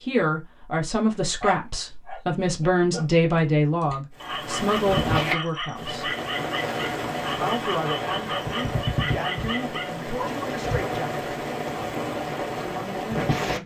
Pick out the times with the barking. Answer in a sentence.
The barking can be heard from 1.4 to 10.3 s.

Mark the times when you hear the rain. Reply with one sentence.
You can hear the rain from 4.2 to 13.6 s.